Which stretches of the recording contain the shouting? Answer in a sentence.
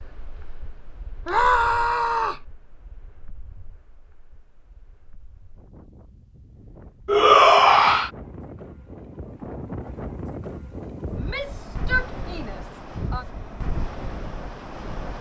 The shouting can be heard from 1.2 to 2.5 s, from 7.0 to 8.1 s and from 11.2 to 13.2 s.